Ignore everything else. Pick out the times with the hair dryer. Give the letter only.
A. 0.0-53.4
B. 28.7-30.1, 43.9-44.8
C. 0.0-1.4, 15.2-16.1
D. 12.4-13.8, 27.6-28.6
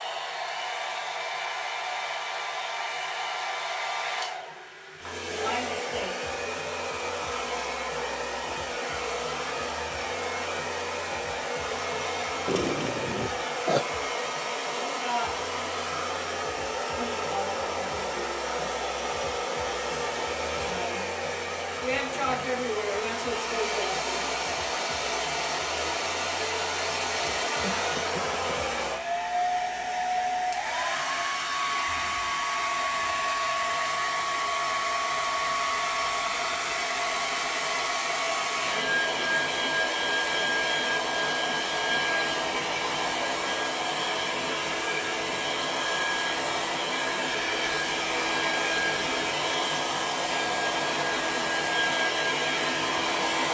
A.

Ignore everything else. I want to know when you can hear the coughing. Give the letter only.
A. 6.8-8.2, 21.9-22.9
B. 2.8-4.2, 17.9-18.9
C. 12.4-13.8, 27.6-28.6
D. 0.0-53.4
C.